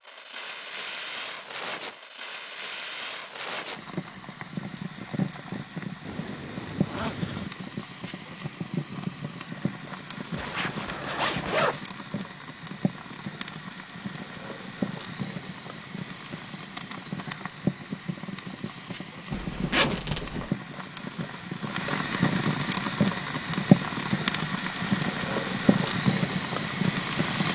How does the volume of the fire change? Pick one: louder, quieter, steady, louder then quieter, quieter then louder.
louder.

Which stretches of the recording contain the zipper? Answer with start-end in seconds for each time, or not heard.
6.0-7.5, 10.3-11.8, 19.3-20.5.